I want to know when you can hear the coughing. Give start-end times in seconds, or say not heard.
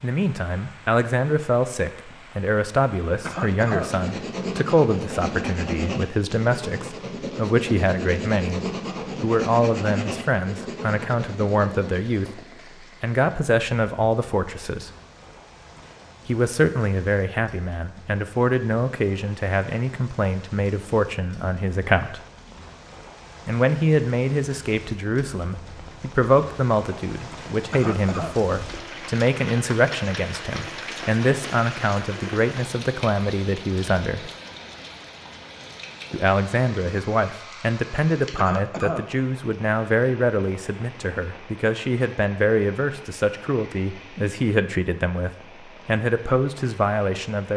3.2-3.9, 27.7-28.4, 38.4-39.0.